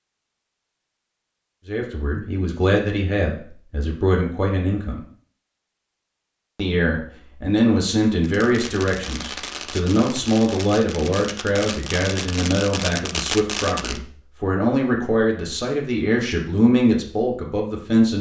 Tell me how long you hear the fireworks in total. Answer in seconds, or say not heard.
6 s.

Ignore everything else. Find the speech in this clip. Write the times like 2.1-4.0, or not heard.
1.6-5.0, 6.5-18.1.